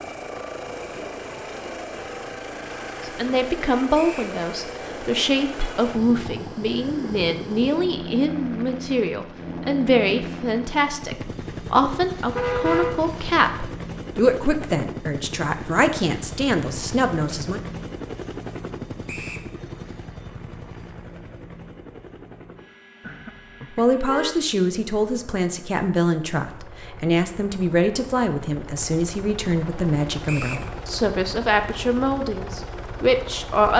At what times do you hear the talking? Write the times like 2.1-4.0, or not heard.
3.0-17.6, 23.8-33.7.